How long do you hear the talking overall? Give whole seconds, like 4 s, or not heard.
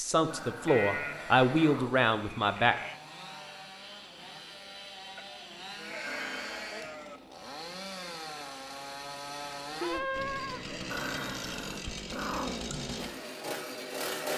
3 s.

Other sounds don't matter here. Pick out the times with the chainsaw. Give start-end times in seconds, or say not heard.
0.0-14.3.